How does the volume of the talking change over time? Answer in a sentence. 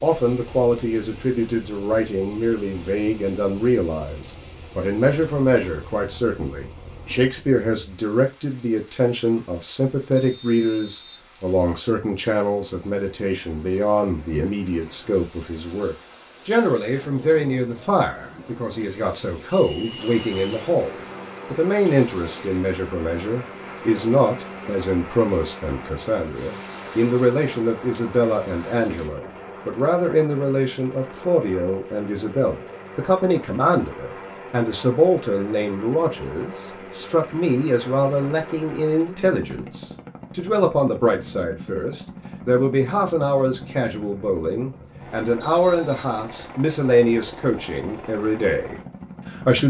The volume of the talking stays about the same.